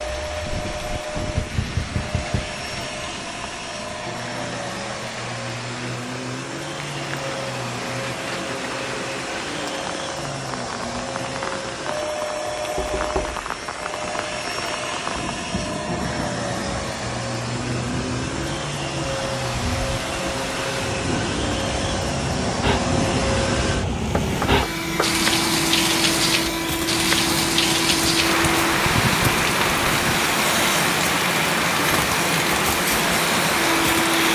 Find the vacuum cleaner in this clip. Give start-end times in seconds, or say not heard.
0.0-34.3.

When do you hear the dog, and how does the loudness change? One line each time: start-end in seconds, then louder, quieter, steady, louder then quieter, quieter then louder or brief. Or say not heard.
not heard.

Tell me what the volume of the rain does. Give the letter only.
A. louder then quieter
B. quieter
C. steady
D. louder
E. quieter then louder
D.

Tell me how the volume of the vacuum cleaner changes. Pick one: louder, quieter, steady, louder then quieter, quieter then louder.
louder.